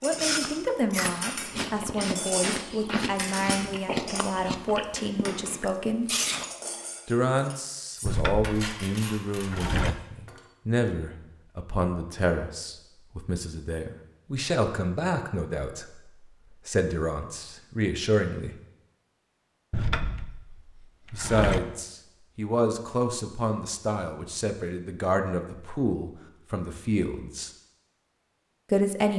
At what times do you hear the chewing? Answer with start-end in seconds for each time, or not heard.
0.0-6.5.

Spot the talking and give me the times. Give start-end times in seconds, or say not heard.
0.0-6.1, 7.0-15.8, 16.6-18.5, 21.1-27.5, 28.7-29.1.